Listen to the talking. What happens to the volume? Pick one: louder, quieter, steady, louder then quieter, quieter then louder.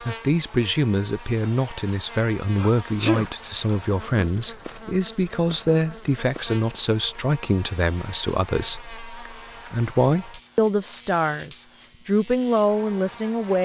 steady.